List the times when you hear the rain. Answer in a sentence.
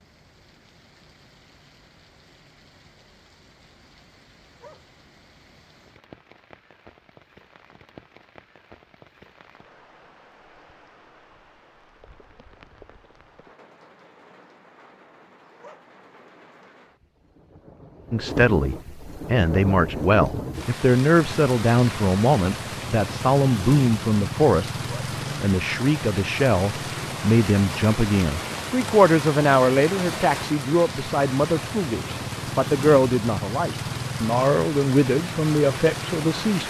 The rain can be heard from 0.0 to 36.6 s.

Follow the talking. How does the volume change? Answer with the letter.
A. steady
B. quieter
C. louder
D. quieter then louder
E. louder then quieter
A.